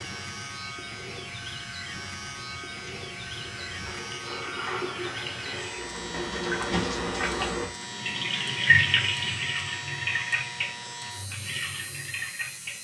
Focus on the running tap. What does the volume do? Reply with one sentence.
The loudness of the running tap goes up, then down.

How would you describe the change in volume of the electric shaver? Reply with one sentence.
The volume of the electric shaver stays about the same.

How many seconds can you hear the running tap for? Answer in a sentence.
The running tap can be heard for 13 seconds in total.